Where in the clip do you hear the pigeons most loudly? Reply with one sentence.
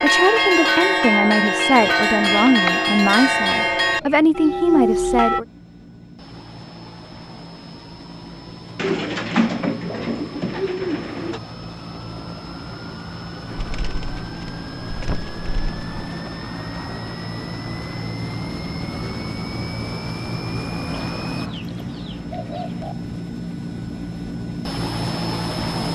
The loudest moment of the pigeons is at 10 seconds.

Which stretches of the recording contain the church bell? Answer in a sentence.
You can hear the church bell from 0.0 to 5.4 s.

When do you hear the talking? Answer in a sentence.
The talking can be heard from 0.0 to 5.5 s.